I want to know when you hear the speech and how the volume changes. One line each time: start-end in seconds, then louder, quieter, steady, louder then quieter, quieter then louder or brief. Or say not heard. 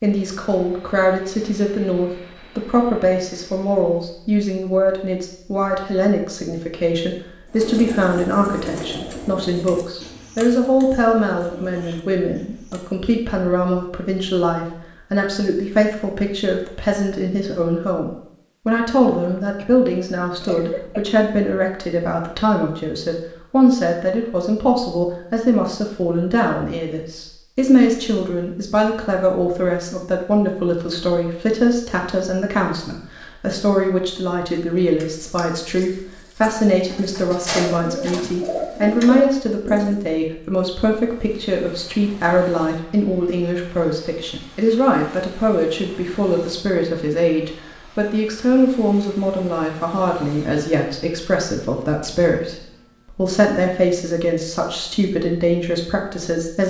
0.0-56.6 steady.